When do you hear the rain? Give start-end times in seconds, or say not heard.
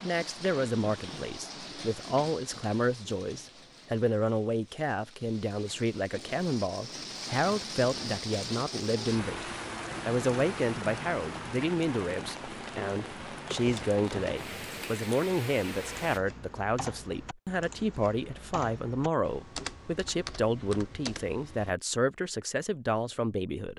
0.0-16.2.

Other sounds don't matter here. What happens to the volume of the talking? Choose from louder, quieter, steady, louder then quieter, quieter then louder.
steady.